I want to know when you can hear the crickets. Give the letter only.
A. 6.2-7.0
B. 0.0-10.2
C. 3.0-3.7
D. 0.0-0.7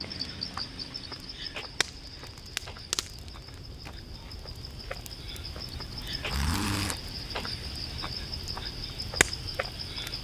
B.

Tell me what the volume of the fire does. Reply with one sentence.
The loudness of the fire goes down, then up.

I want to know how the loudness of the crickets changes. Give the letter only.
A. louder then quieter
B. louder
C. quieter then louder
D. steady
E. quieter
C.